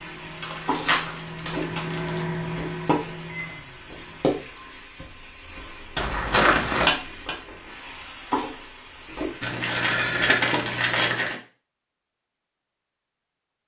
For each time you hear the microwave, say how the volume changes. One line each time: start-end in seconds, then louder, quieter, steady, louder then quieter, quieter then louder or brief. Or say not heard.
0.0-4.4 louder then quieter.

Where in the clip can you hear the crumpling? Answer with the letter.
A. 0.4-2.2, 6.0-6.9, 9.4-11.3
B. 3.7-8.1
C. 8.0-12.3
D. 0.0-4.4
A.